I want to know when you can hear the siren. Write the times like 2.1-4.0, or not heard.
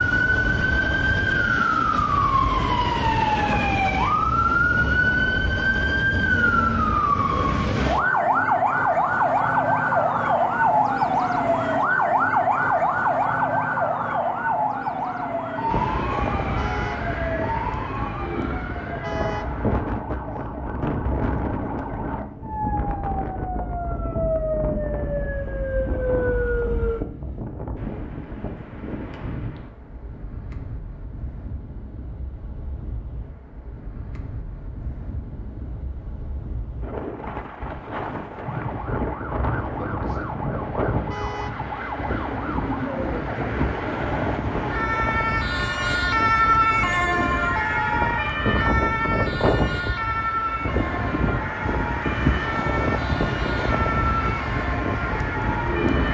0.0-27.1, 38.4-56.0.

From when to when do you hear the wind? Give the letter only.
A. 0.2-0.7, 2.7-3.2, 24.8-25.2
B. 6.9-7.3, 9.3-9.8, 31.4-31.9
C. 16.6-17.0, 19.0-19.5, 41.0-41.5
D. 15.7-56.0
D.